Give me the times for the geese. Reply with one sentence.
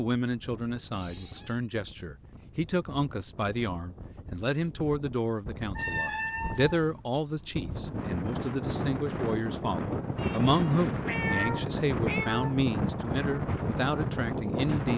You can't hear the geese here.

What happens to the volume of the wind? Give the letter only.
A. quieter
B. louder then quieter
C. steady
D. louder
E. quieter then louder
D.